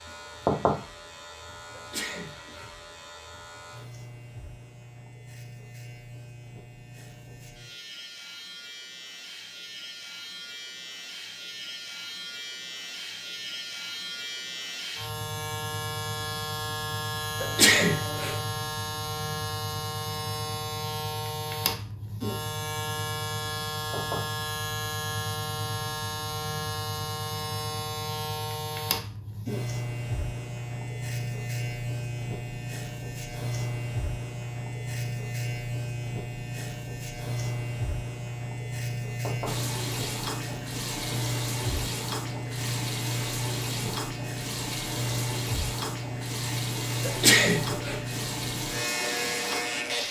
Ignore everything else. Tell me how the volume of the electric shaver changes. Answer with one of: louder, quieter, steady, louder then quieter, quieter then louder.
louder.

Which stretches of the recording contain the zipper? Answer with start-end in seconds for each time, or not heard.
not heard.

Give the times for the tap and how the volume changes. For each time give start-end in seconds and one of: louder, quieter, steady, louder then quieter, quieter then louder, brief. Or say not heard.
39.5-50.0 steady.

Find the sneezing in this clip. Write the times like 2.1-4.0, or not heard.
1.8-2.8, 17.4-18.4, 47.0-48.0.